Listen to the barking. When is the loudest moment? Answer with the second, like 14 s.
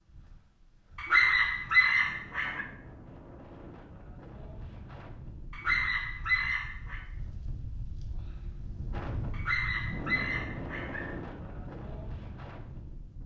1 s.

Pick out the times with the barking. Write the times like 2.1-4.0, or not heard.
0.9-2.6, 5.5-7.0, 9.3-11.2.